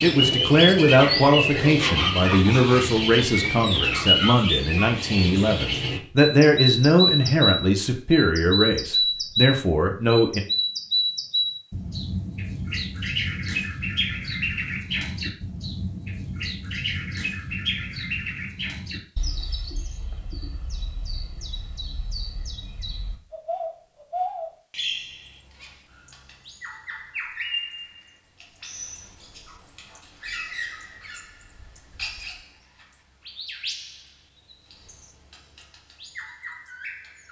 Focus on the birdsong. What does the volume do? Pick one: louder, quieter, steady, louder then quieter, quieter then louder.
quieter.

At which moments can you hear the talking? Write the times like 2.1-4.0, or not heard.
0.0-10.4.